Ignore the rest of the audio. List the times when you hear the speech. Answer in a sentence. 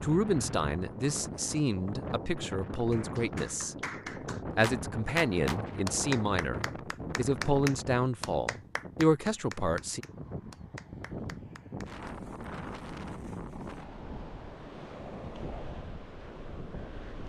You can hear the speech from 0.0 to 3.8 s and from 4.5 to 10.1 s.